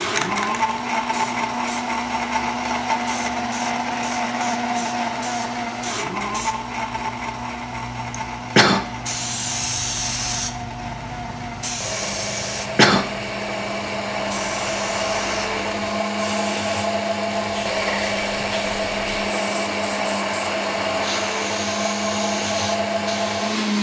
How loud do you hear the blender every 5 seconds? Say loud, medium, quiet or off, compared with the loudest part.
loud, medium, medium, loud, loud.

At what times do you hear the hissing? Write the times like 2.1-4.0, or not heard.
0.0-23.7.